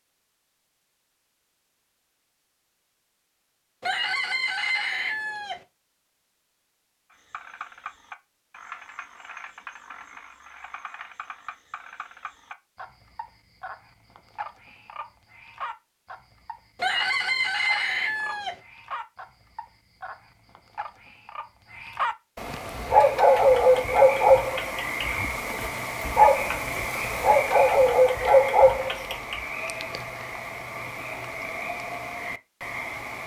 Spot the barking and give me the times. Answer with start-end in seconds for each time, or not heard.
22.7-29.4.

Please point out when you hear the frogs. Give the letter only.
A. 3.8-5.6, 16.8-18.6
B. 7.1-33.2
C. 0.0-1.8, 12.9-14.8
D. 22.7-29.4
B.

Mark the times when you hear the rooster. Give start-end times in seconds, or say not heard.
3.8-5.6, 16.8-18.6.